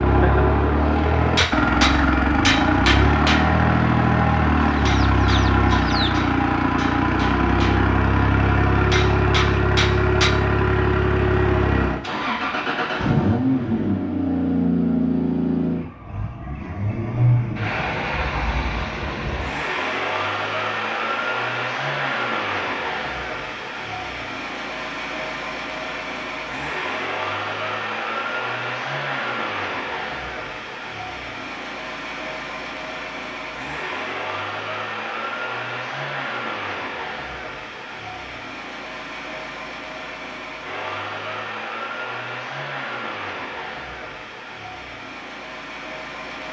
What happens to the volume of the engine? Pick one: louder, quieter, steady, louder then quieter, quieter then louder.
quieter.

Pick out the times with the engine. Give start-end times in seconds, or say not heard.
0.0-46.4.